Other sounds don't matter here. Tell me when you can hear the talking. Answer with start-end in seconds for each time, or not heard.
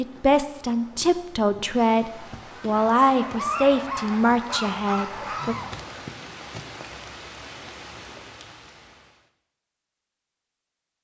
0.0-5.5.